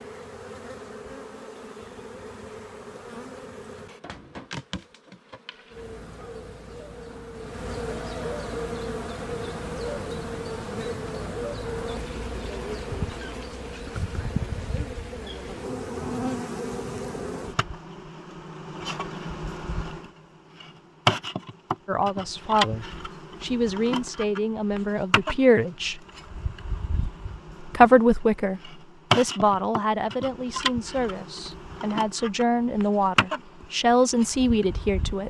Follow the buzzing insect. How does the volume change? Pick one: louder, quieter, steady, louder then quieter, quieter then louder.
louder.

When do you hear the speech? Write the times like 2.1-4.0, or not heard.
21.9-26.0, 27.6-35.2.